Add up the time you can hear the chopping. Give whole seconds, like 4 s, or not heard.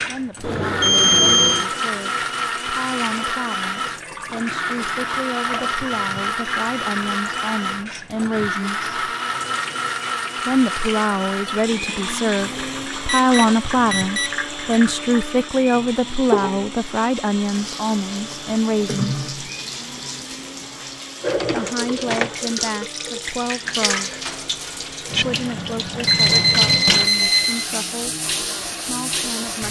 not heard.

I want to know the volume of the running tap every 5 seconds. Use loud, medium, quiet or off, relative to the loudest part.
medium, medium, medium, loud, loud, loud.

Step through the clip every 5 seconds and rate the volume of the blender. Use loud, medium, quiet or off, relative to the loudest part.
loud, loud, loud, medium, quiet, quiet.